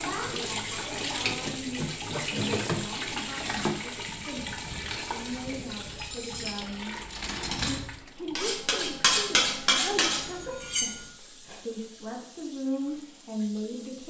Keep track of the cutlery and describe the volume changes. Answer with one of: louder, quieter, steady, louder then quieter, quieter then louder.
louder.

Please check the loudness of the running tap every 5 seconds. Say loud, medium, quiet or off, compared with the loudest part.
loud, medium, quiet.